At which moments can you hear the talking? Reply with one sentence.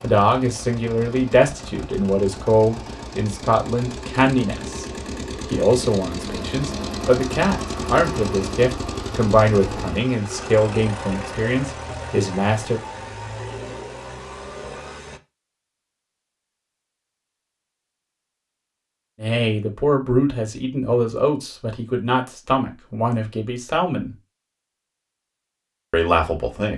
You can hear the talking from 0.0 to 4.8 s, from 5.5 to 12.8 s, from 19.2 to 24.1 s and from 25.9 to 26.7 s.